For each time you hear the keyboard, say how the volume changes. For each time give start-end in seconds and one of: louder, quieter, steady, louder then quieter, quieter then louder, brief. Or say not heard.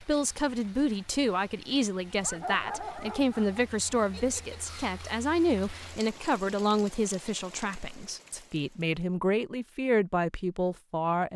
not heard.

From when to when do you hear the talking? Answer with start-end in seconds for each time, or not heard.
0.0-11.3.